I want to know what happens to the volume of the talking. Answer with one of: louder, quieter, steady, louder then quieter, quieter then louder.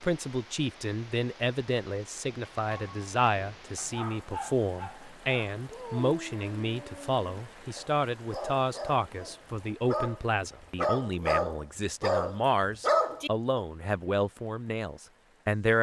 steady.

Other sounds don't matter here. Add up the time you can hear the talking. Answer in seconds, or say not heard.
16 s.